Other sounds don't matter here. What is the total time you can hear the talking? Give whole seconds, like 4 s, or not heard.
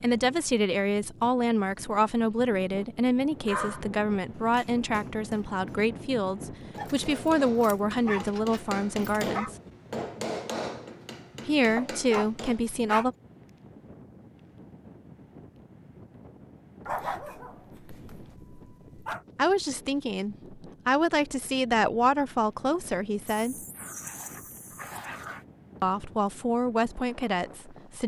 18 s.